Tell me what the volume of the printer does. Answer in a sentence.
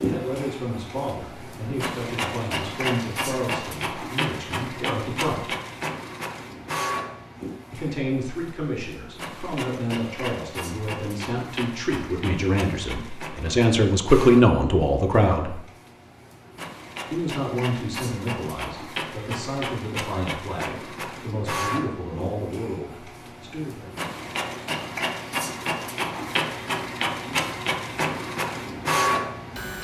The volume of the printer goes down, then up.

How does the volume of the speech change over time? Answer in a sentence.
The volume of the speech goes up, then down.